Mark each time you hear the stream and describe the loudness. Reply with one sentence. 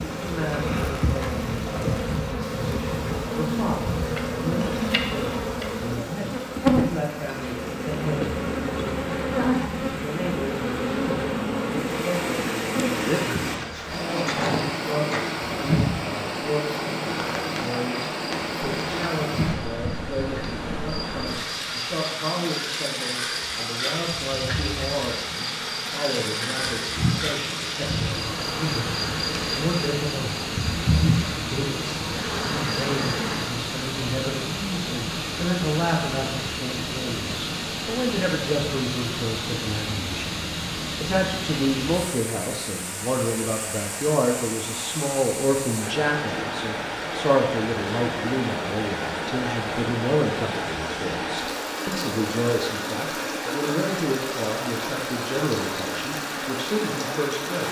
You can hear the stream from 0.0 to 57.6 s, getting louder.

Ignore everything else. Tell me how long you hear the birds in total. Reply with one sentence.
The birds can't be heard in this clip.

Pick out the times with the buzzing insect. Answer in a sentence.
You can hear the buzzing insect from 0.0 to 33.5 s.